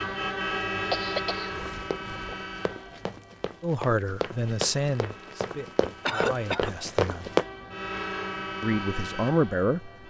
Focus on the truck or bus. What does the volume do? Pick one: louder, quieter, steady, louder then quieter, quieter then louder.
quieter then louder.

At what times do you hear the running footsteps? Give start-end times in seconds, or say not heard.
1.7-7.5.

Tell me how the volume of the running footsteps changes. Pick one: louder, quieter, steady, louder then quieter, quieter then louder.
louder.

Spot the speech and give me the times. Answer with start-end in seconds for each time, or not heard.
3.6-7.2, 8.6-9.9.